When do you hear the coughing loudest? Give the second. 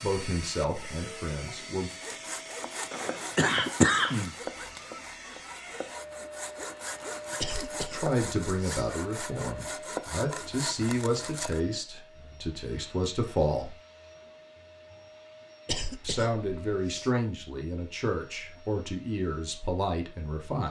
4 s.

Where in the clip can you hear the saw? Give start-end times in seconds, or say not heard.
1.9-11.7.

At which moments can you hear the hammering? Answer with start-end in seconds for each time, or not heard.
not heard.